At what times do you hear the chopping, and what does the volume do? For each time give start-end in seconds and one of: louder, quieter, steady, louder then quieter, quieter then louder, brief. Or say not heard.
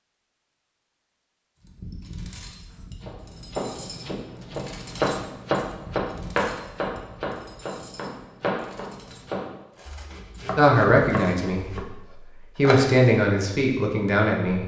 3.0-11.8 louder then quieter
12.6-13.0 brief.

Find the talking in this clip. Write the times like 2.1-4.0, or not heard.
10.6-11.9, 12.6-14.6.